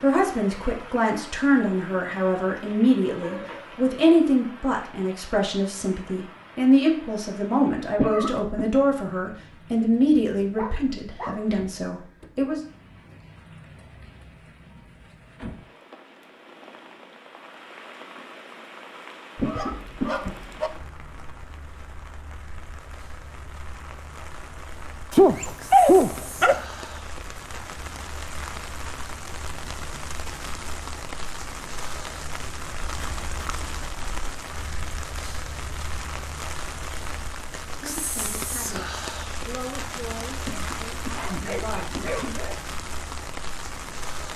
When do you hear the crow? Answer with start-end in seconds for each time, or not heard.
not heard.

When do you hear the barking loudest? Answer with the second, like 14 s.
26 s.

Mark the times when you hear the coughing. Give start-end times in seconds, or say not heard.
8.0-8.7, 19.4-20.4, 40.5-42.2.